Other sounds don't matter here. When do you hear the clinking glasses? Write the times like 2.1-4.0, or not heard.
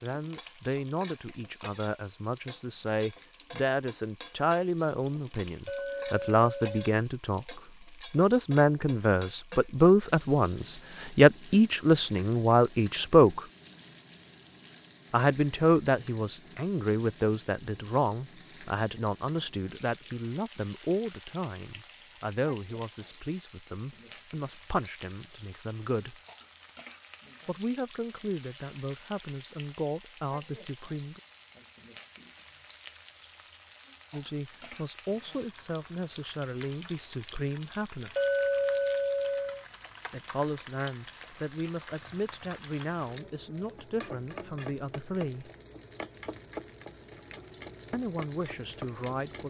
5.7-7.0, 38.1-39.6.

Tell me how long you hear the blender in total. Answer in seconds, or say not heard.
not heard.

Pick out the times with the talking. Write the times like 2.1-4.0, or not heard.
0.0-13.4, 15.1-26.1, 27.4-31.2, 34.1-38.1, 40.1-45.5, 47.9-49.4.